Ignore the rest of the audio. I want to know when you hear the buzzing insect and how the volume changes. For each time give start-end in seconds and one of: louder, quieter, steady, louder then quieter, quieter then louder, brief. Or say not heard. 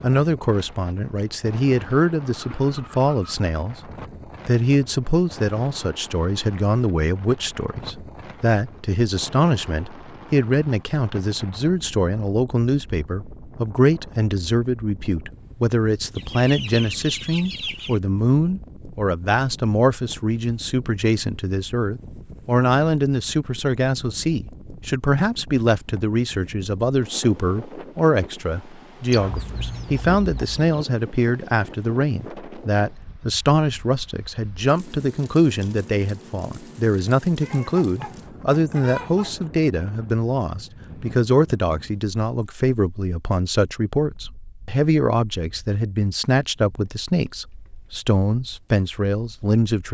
not heard.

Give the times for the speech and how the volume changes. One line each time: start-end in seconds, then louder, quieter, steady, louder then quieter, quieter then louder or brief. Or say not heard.
0.0-49.8 steady.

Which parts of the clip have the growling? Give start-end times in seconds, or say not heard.
not heard.